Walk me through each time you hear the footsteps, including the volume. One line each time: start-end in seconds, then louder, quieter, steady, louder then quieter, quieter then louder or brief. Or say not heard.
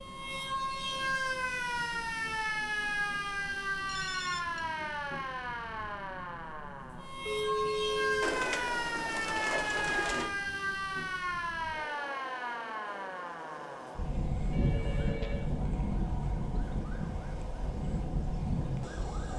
not heard.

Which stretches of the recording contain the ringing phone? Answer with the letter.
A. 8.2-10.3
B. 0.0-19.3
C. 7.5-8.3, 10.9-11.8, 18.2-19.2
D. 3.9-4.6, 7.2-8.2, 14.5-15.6
D.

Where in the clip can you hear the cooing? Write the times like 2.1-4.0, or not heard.
8.2-10.3.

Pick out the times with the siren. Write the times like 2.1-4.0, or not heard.
0.0-19.3.